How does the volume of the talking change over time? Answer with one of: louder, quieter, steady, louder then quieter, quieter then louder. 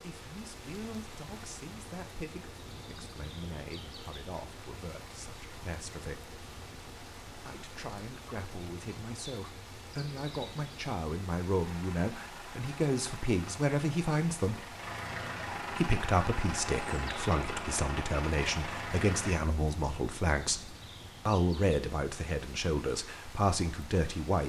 louder.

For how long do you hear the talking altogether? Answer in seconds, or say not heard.
22 s.